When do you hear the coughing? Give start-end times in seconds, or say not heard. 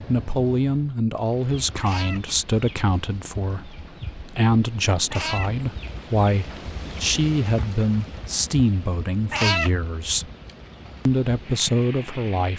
not heard.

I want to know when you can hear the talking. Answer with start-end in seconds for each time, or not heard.
0.1-10.2, 11.1-12.5.